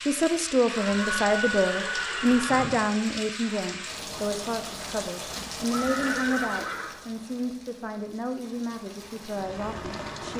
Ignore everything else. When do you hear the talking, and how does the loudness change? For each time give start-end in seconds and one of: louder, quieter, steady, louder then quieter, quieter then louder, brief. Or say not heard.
0.0-10.3 quieter.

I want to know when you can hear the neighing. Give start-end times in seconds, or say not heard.
0.7-2.7, 5.3-6.9.